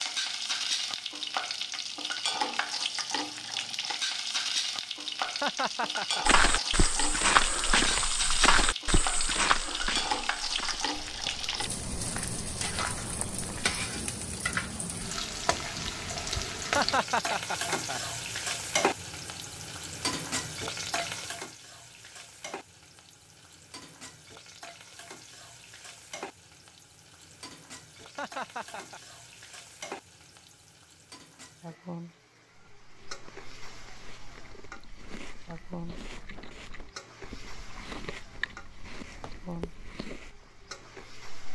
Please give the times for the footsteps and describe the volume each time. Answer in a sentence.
You can hear the footsteps from 6.2 to 13.8 s, getting quieter.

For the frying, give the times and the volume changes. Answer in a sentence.
The frying can be heard from 0.0 to 41.5 s, getting quieter.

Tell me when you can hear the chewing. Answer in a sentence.
You can hear the chewing from 32.8 to 41.5 s.